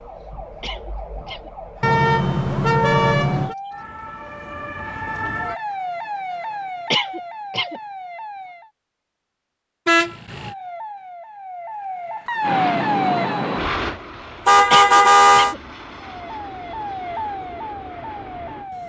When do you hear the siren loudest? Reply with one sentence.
The volume of the siren peaks at 13 seconds.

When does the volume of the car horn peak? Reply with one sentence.
The volume of the car horn peaks at 15 seconds.